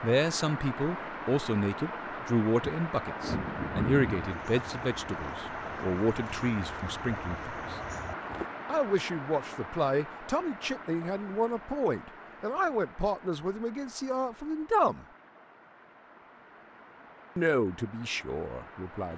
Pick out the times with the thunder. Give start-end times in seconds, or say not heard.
3.0-4.3.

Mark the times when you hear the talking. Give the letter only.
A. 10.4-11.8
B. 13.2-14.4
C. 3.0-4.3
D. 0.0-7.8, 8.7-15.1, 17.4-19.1
D.